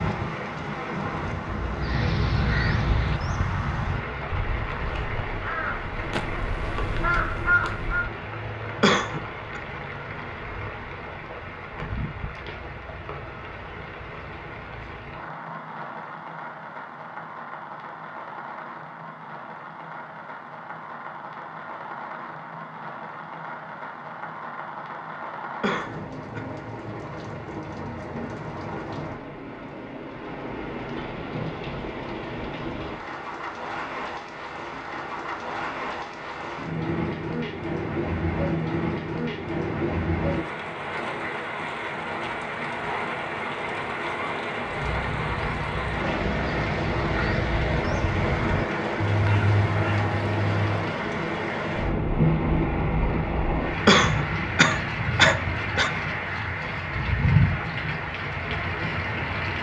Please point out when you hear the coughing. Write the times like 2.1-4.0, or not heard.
8.8-9.6, 25.6-26.4, 53.9-55.9.